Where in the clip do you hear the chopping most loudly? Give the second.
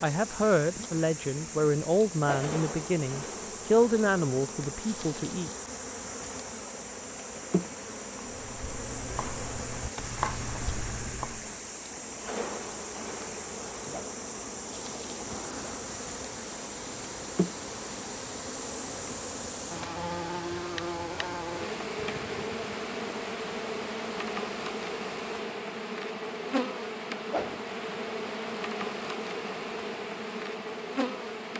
10 s.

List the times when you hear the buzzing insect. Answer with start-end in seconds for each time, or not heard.
0.0-31.5.